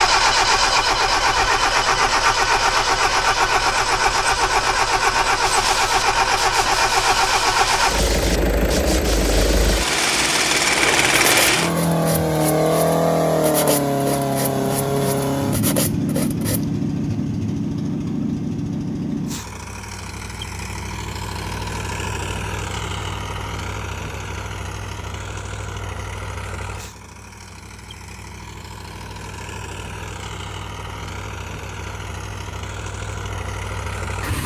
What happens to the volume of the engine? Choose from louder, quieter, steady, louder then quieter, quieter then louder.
quieter.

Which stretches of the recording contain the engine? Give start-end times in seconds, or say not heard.
0.0-34.4.